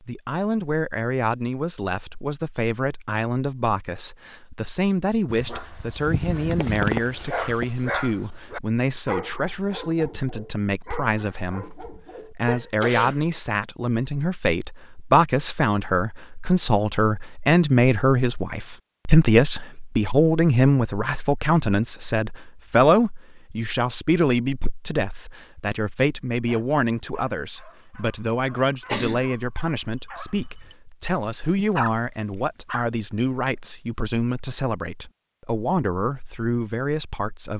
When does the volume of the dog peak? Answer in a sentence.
The volume of the dog peaks at 7 seconds.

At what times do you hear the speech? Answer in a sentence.
You can hear the speech from 0.0 to 37.5 s.